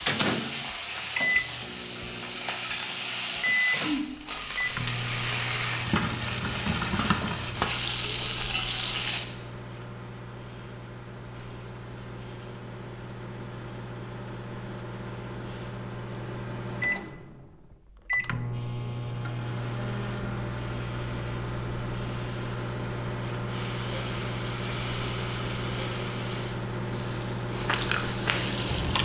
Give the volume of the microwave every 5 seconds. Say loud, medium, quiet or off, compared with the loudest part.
loud, medium, medium, loud, loud, loud.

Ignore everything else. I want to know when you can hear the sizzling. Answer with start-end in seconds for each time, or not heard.
0.0-9.2, 23.4-29.0.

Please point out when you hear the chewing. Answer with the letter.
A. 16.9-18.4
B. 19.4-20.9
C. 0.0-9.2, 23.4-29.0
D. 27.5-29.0
D.